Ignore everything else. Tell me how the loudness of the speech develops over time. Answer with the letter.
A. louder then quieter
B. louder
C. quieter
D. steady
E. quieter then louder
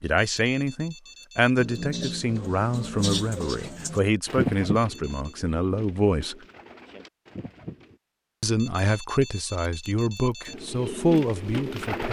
D.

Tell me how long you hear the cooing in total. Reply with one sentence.
The cooing can be heard for 8 seconds in total.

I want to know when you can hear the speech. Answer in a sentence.
The speech can be heard from 0.0 to 6.3 s and from 8.4 to 12.0 s.